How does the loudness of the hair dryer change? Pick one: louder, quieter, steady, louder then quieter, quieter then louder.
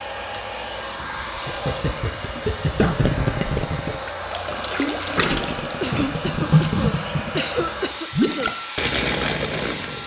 steady.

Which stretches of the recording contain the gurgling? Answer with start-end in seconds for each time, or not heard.
1.4-10.0.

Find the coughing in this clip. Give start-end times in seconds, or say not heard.
2.4-3.0, 5.8-8.6.